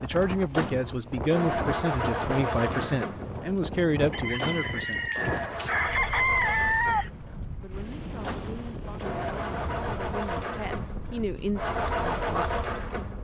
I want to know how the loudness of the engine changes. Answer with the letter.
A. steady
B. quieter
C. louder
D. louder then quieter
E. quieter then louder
E.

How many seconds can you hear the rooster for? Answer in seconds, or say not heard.
3 s.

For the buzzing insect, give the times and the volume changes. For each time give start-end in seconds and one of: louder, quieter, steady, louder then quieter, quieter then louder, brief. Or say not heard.
not heard.